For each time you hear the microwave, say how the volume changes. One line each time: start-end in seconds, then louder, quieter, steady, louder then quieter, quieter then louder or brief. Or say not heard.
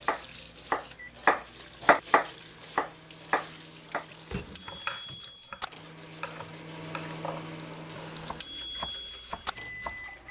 0.0-10.2 louder.